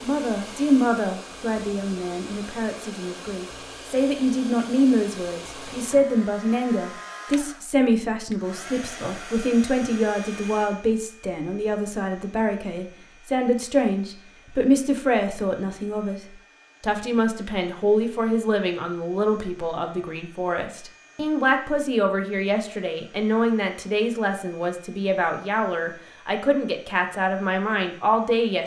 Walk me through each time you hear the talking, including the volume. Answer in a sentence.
The talking can be heard from 0.0 to 28.6 s, at a steady volume.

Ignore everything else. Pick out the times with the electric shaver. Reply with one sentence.
You can't hear the electric shaver here.